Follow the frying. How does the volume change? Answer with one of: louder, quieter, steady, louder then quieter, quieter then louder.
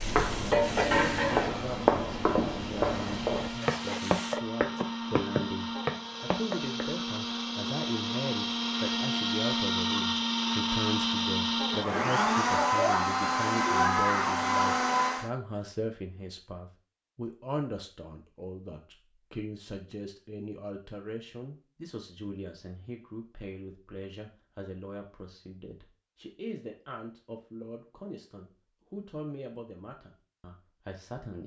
quieter then louder.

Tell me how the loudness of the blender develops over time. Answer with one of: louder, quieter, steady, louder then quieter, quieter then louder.
louder.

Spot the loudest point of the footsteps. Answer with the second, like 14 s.
2 s.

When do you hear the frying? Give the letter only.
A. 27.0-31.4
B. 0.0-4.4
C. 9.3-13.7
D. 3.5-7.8
B.